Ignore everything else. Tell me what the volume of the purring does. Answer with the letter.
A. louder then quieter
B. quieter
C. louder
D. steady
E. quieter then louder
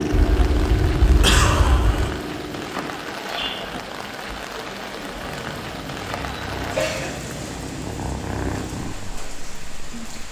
E.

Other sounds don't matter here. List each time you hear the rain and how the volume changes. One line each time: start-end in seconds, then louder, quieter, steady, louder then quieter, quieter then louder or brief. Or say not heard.
0.0-10.2 quieter.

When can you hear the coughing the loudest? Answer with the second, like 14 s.
1 s.